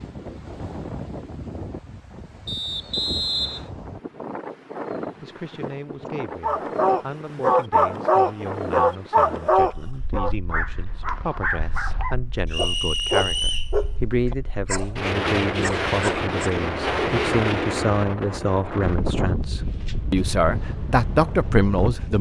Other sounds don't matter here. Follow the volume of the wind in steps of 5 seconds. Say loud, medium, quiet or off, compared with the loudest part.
medium, medium, quiet, loud, medium.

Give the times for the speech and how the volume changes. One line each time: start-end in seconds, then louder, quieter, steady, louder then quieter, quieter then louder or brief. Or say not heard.
5.2-22.1 louder.